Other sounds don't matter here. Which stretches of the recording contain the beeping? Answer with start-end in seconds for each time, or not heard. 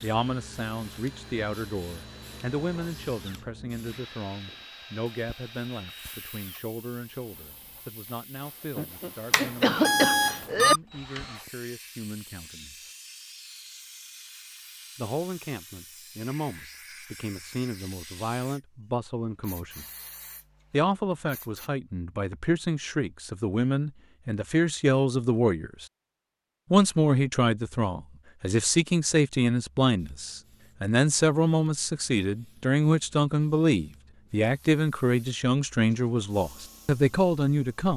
9.3-10.8.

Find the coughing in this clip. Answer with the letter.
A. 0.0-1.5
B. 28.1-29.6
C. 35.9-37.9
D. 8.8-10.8
D.